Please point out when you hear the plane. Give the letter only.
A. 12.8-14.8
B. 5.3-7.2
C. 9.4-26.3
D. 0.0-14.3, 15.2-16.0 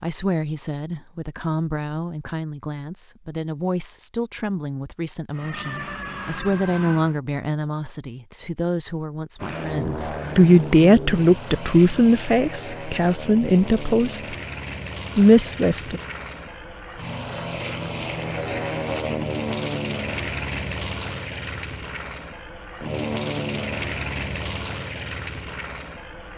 C.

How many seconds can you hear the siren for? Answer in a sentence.
The siren can be heard for 2 seconds in total.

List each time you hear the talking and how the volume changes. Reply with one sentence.
The talking can be heard from 0.0 to 14.3 s, getting louder; and briefly from 15.2 to 16.0 s.